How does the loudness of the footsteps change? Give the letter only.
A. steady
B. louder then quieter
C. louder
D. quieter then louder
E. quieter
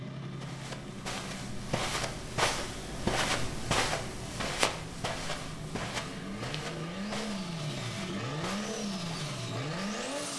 B.